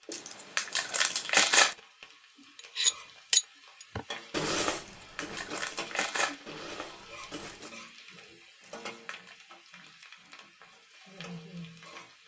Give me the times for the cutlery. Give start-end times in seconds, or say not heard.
2.5-7.7.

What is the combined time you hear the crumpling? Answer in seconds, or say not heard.
4 s.